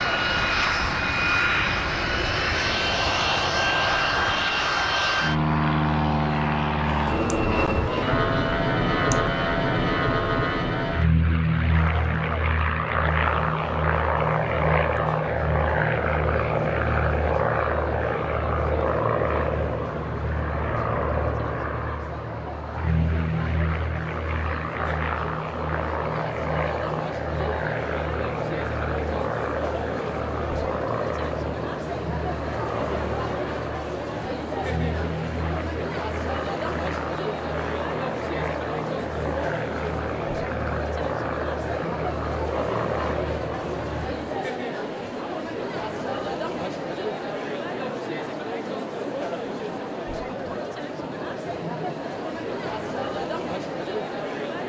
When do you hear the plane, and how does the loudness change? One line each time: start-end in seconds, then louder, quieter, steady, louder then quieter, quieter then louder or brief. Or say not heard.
0.0-44.4 quieter.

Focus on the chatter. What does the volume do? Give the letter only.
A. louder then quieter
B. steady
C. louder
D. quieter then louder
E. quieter
C.